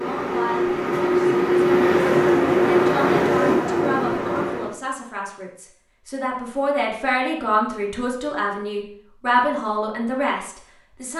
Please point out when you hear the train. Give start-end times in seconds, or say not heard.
0.0-4.8.